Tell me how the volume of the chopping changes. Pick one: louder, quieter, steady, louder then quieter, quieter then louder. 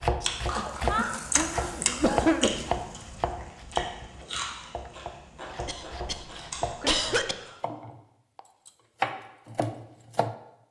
quieter then louder.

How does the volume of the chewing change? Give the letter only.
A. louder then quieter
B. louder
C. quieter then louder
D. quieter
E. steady
D.